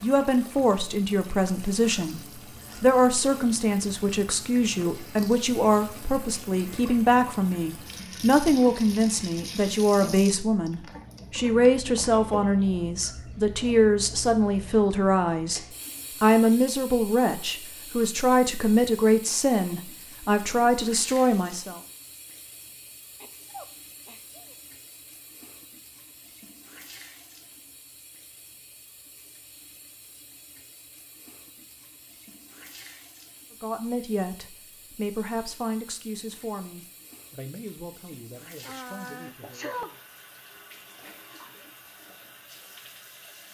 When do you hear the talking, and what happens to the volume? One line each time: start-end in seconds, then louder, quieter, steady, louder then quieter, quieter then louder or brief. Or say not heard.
0.0-21.8 steady
33.6-40.0 quieter.